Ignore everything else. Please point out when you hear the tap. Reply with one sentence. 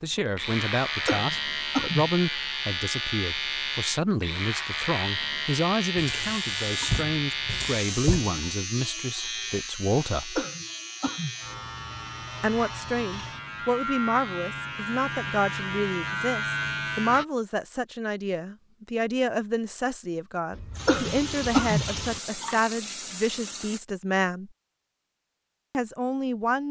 You can hear the tap from 6.0 to 8.6 s and from 20.5 to 23.8 s.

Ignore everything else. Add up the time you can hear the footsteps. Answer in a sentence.
The footsteps can't be heard in this clip.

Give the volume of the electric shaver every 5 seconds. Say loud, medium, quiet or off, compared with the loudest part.
loud, loud, medium, loud, off, off.